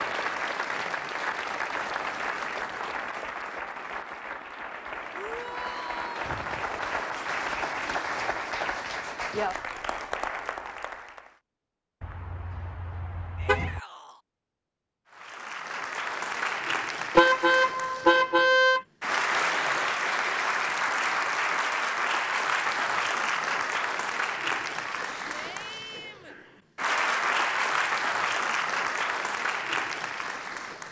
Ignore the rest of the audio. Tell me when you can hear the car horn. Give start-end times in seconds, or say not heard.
12.0-13.8, 17.1-18.9.